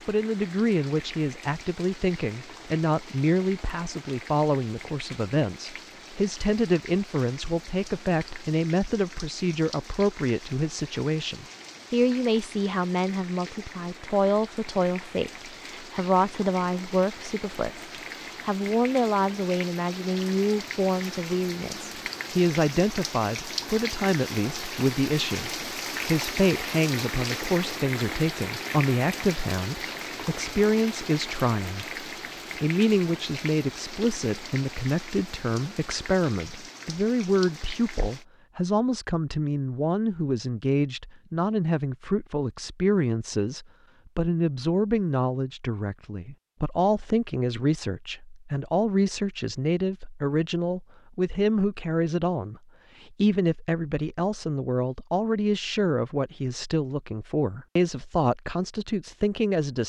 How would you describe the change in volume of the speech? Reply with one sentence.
The loudness of the speech stays about the same.